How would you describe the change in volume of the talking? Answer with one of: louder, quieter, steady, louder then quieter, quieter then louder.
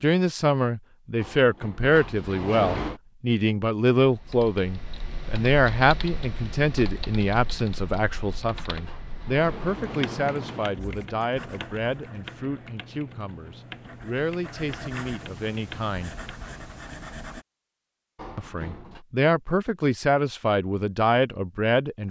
quieter then louder.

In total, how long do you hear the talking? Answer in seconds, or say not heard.
20 s.